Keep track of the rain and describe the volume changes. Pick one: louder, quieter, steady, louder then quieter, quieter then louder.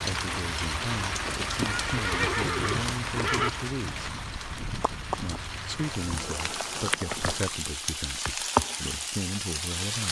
quieter then louder.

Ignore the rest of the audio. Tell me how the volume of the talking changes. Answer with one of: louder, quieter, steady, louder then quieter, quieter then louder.
steady.